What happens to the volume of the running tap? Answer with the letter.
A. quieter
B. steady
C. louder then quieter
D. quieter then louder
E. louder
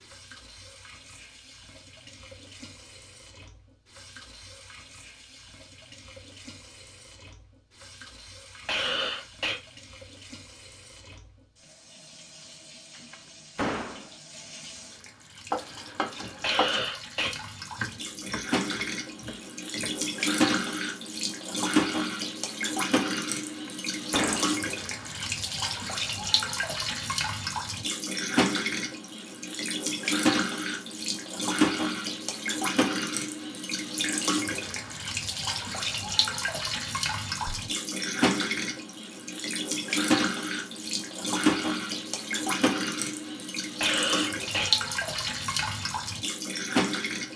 E.